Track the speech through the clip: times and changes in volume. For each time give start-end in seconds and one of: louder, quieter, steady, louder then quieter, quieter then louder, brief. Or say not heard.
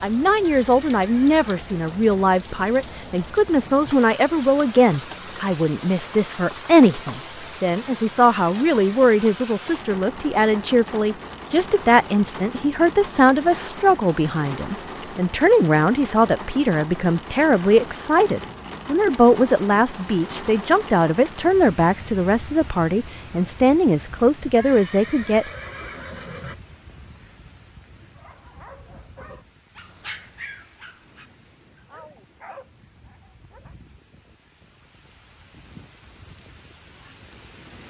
0.0-25.4 steady.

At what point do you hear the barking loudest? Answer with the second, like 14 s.
30 s.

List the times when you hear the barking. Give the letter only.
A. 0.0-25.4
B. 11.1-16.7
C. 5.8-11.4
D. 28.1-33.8
D.